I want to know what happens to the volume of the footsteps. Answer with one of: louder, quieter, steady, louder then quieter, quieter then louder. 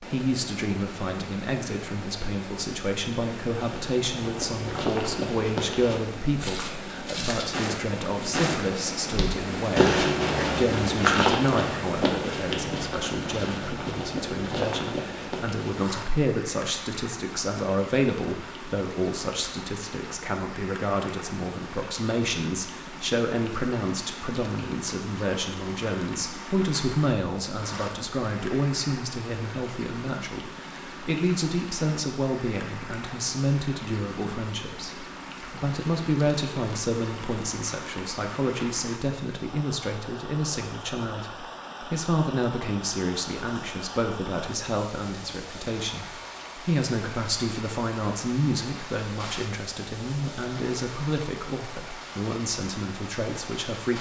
louder then quieter.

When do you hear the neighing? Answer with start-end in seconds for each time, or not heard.
not heard.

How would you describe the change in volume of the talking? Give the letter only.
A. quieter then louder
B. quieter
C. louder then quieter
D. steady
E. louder
D.